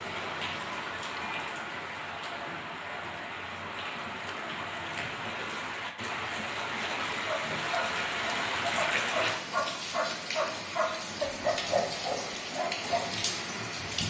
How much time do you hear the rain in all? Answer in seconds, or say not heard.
14 s.